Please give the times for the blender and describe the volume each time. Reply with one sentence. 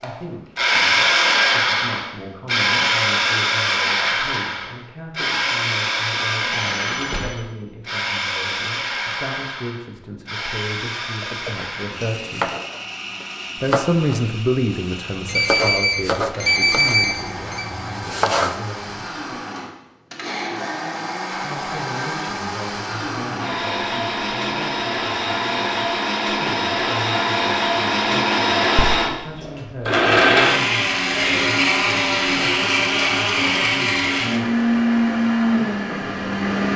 The blender can be heard from 0.0 to 36.7 s, getting quieter then louder.